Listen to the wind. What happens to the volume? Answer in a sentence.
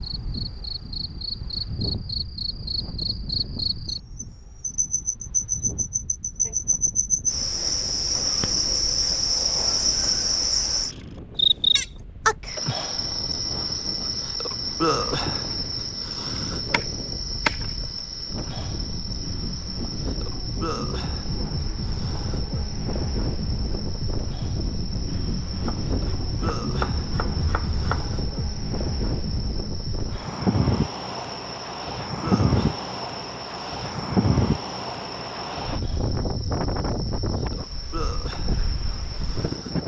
The loudness of the wind goes up.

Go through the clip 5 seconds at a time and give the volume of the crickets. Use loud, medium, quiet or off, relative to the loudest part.
medium, loud, loud, medium, quiet, quiet, quiet, quiet.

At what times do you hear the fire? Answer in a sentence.
You can't hear the fire here.